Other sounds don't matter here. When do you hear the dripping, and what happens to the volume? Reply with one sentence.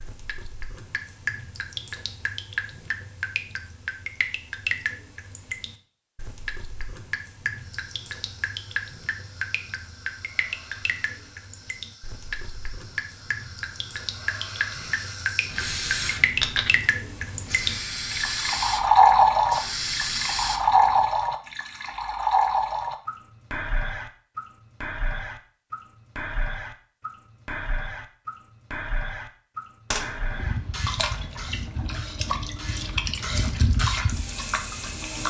The dripping can be heard from 0.0 to 35.2 s, getting louder then quieter.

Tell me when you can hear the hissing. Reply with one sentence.
You can hear the hissing from 7.5 to 21.0 s and from 29.9 to 35.2 s.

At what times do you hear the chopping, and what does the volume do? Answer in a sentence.
You can't hear the chopping here.